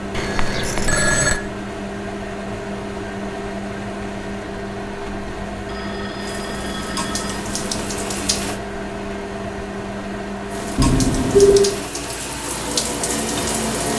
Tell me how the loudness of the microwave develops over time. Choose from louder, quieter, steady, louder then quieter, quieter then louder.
steady.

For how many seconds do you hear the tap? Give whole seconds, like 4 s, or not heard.
6 s.